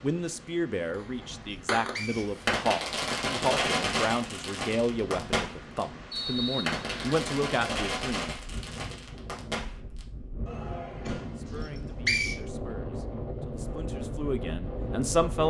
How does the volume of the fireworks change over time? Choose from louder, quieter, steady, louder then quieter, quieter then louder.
quieter.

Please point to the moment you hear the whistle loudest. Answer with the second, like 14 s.
12 s.